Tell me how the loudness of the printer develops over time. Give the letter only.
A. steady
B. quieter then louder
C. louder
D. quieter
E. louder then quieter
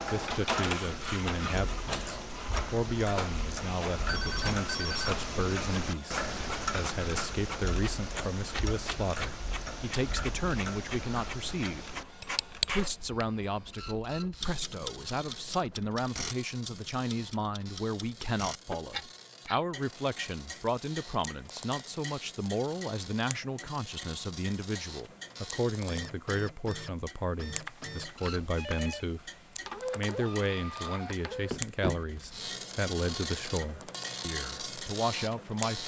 B.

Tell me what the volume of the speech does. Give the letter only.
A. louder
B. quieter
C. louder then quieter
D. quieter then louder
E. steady
E.